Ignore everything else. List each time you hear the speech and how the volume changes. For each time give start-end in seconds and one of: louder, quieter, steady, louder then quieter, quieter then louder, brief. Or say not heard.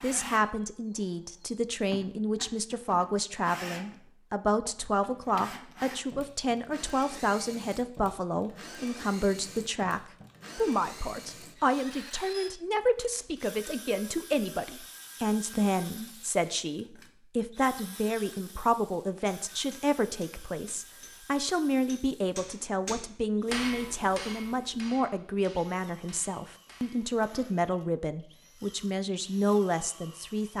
0.0-30.5 steady.